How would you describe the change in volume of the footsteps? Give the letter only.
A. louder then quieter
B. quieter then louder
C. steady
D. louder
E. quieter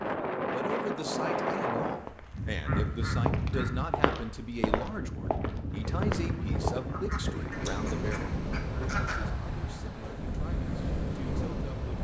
D.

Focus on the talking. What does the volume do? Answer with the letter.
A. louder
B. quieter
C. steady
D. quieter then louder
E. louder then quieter
B.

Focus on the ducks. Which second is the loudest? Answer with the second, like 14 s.
9 s.